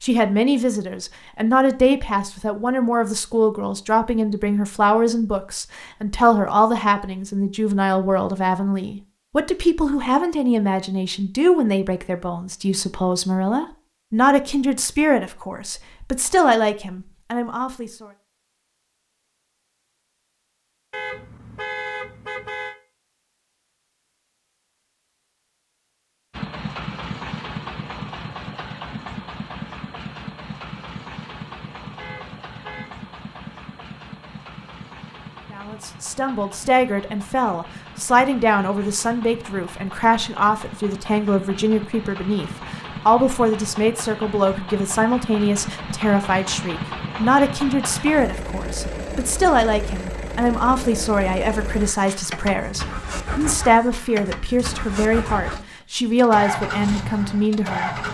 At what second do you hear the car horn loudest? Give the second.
22 s.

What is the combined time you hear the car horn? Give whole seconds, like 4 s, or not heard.
3 s.